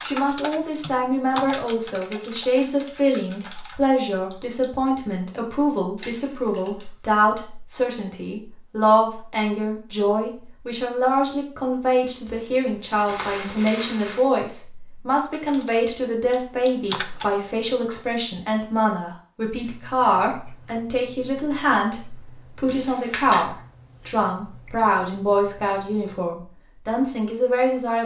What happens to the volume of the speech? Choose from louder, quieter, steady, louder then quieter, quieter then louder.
steady.